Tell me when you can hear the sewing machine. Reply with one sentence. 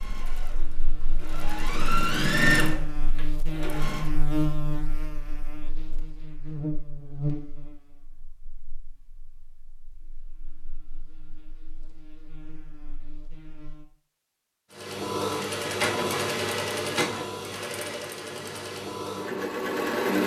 You can hear the sewing machine from 0.0 to 4.0 s and from 14.8 to 20.2 s.